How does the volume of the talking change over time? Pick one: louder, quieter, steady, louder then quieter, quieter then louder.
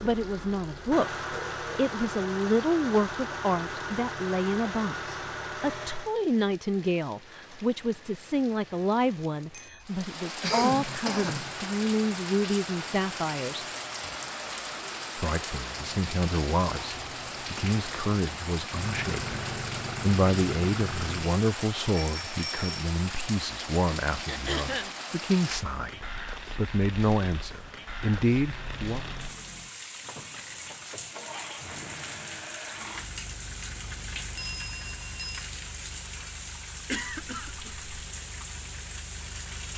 steady.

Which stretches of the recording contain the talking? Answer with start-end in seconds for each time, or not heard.
0.0-13.7, 15.2-29.0.